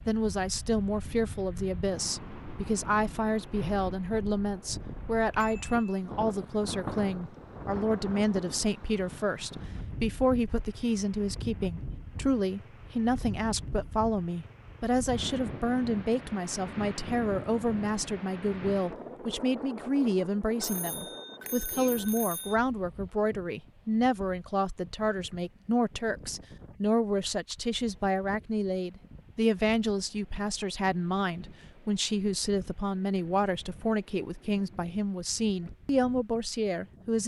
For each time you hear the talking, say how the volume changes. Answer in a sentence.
The talking can be heard from 0.1 to 37.2 s, at a steady volume.